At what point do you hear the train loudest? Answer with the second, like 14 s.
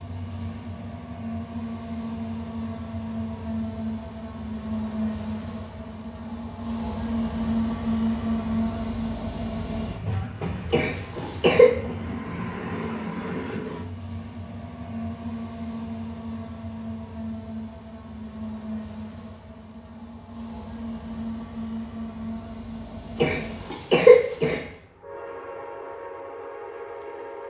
8 s.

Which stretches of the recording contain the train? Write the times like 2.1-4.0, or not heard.
0.0-27.4.